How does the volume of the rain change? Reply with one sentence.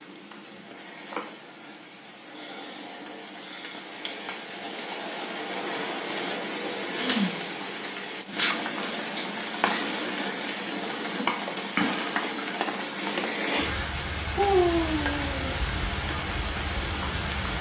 The volume of the rain goes up.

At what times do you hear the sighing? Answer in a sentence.
You can hear the sighing from 2.3 to 3.9 s, from 6.9 to 7.5 s and from 14.3 to 15.6 s.